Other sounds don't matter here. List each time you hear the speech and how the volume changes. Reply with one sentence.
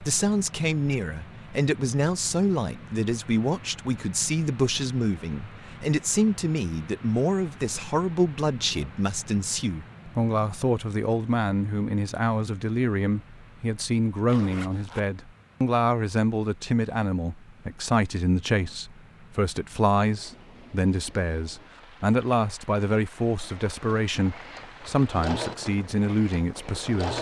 The speech can be heard from 0.0 to 27.1 s, at a steady volume.